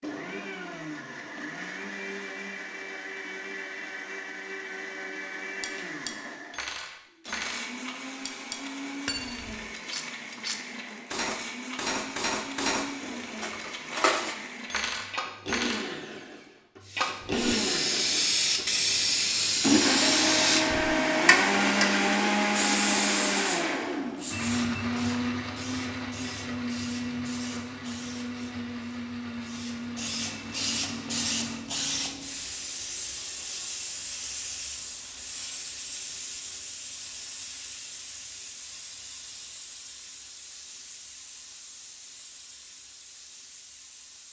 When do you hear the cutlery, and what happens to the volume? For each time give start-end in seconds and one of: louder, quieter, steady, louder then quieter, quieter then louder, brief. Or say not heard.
5.6-15.9 louder.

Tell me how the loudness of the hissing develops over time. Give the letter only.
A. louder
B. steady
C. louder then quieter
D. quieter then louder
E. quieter
E.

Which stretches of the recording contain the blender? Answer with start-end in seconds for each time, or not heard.
0.0-31.6.